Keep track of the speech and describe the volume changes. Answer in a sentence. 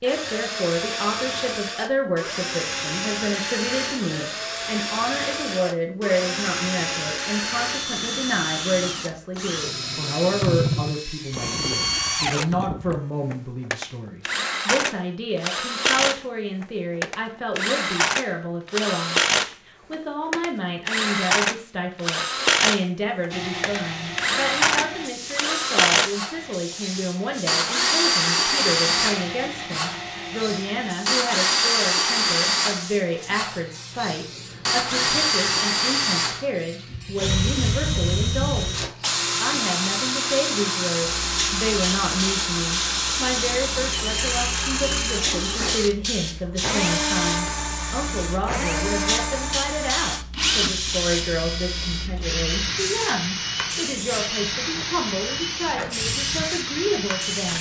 The loudness of the speech stays about the same.